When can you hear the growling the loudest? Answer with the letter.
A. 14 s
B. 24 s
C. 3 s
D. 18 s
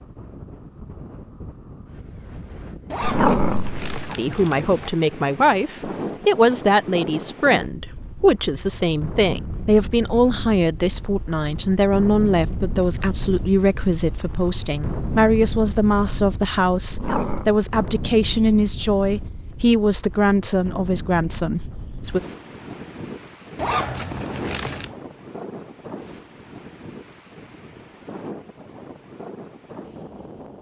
C.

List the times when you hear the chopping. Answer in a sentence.
You can't hear the chopping here.